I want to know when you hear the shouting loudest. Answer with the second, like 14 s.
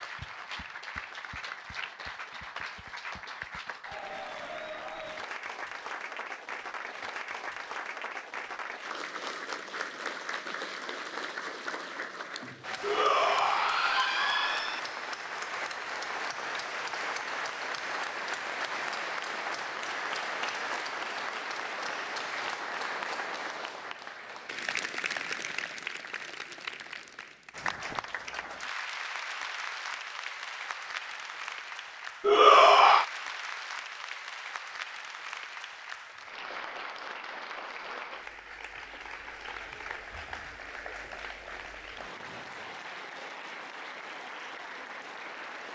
33 s.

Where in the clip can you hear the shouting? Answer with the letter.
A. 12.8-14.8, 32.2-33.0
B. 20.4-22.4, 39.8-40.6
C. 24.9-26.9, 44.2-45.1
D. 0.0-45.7
A.